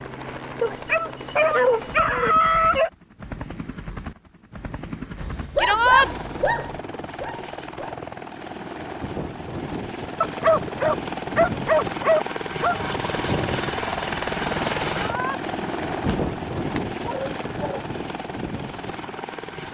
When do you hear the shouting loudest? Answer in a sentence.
The loudest moment of the shouting is at 6 seconds.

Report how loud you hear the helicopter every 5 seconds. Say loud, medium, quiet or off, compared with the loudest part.
medium, medium, loud, loud.